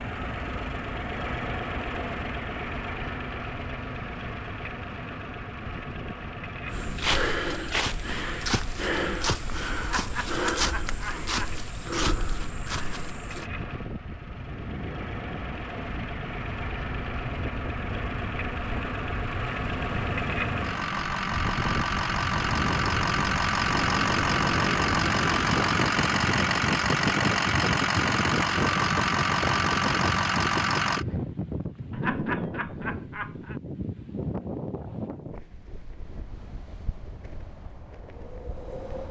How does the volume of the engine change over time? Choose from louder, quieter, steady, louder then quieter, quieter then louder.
quieter then louder.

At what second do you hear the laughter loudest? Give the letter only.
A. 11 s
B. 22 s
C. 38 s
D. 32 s
D.